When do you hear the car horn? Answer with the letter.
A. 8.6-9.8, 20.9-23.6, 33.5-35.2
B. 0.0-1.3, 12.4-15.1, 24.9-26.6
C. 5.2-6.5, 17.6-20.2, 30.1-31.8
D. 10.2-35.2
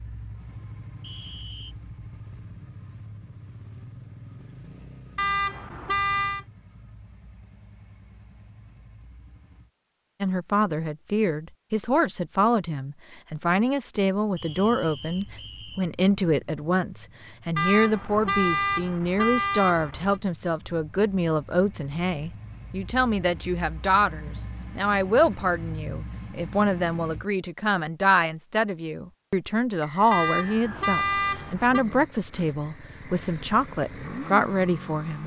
C.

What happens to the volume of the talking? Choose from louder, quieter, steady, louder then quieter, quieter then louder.
steady.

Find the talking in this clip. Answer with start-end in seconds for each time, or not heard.
10.2-35.2.